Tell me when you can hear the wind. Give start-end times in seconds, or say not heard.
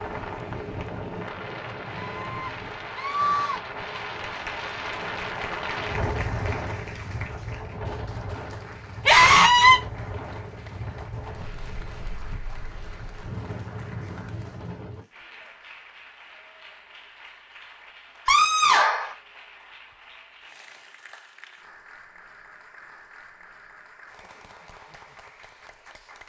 0.0-15.1.